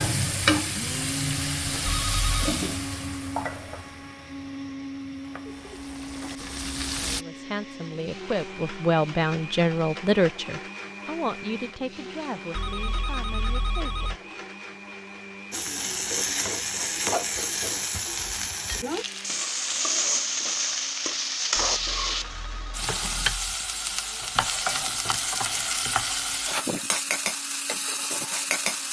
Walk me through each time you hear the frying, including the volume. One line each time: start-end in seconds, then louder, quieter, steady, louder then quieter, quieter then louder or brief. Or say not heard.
0.0-7.2 quieter then louder
15.5-28.8 steady.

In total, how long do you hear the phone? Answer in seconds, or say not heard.
4 s.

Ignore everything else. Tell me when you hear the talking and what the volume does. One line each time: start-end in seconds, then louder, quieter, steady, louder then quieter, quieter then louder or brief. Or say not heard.
7.0-14.2 louder then quieter.